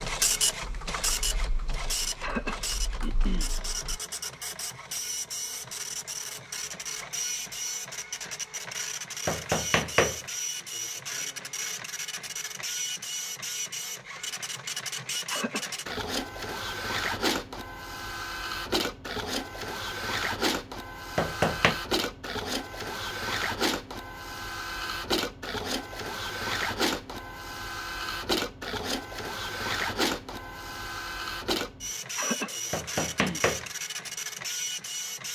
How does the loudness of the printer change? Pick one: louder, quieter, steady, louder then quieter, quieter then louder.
steady.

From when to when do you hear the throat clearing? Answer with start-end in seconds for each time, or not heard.
2.2-3.5, 15.2-15.7, 32.1-33.5.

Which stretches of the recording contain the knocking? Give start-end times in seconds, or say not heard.
9.2-10.2, 21.1-21.8, 32.7-33.6.